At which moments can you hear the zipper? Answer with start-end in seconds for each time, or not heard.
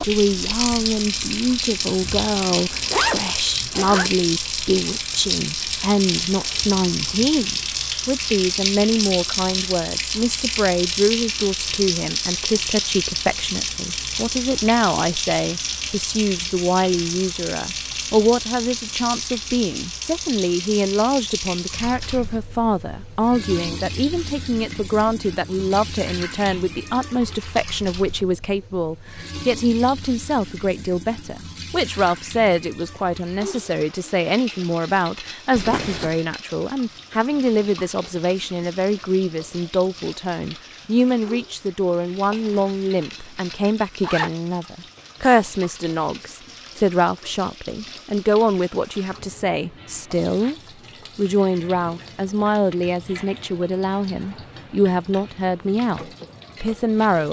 2.7-4.2, 35.5-36.2, 42.3-44.3.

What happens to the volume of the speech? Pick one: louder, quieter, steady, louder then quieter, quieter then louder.
steady.